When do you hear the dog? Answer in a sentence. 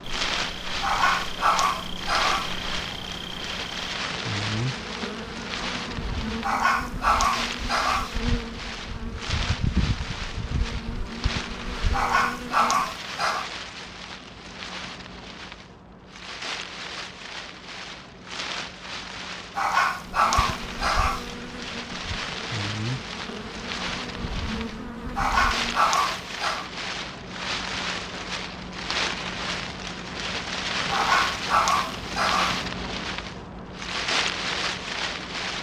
The dog can be heard from 0.8 to 2.5 s, from 6.4 to 8.2 s, from 11.9 to 13.5 s, from 19.6 to 21.2 s, from 25.1 to 26.6 s and from 30.9 to 32.6 s.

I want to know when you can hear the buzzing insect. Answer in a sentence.
The buzzing insect can be heard from 0.0 to 12.9 s and from 20.1 to 25.9 s.